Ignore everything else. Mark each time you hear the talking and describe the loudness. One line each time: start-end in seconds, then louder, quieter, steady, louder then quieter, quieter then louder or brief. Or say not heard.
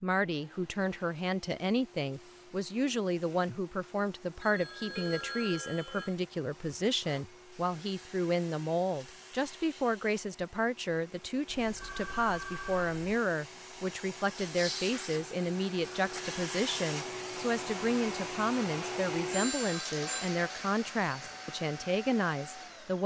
0.0-23.0 steady.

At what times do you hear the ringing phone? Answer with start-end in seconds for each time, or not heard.
4.4-6.2, 11.6-12.9, 19.3-20.3.